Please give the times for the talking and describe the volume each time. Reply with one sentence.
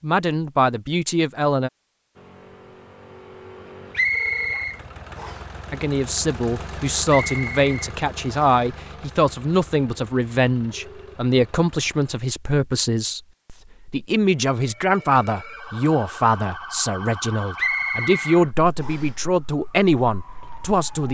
You can hear the talking briefly from 0.0 to 1.7 s; and from 5.7 to 21.0 s, at a steady volume.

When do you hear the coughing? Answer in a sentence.
You can't hear the coughing here.